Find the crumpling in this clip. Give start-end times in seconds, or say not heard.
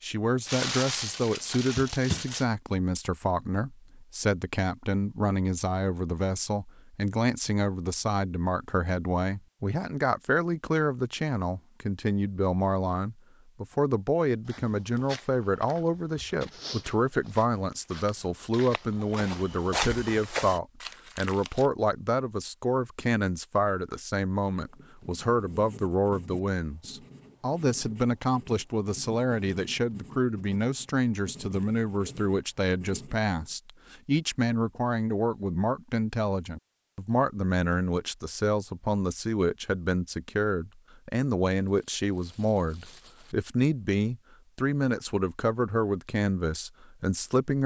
0.5-2.5, 20.8-21.7, 41.6-43.4.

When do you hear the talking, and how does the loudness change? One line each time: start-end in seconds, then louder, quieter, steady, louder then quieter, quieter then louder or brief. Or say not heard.
0.0-47.6 steady.